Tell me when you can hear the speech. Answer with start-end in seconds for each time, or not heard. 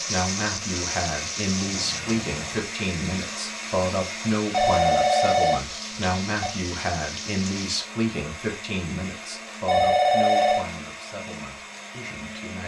0.0-12.6.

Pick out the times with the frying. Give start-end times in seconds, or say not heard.
0.0-7.8.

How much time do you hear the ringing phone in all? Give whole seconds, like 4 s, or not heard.
4 s.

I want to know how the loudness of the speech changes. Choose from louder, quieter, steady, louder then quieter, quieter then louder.
quieter.